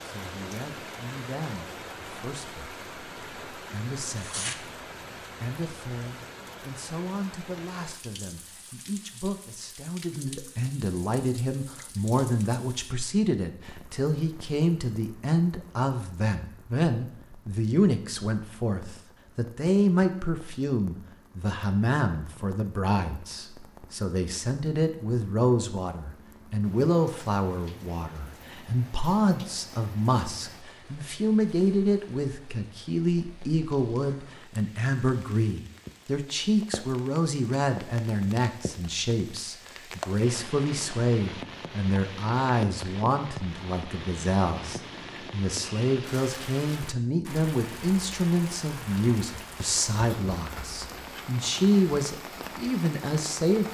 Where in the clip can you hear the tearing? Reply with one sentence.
The tearing can be heard from 4.0 to 4.6 s.